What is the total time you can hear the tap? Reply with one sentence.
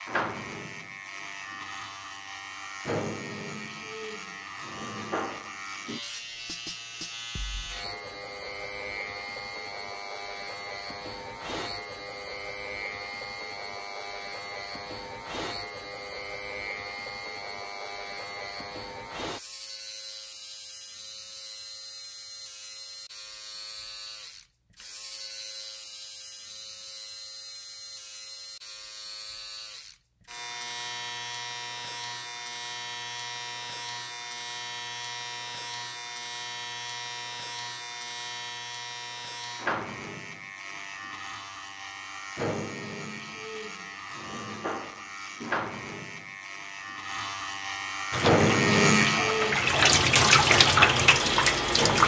The tap can be heard for 4 seconds in total.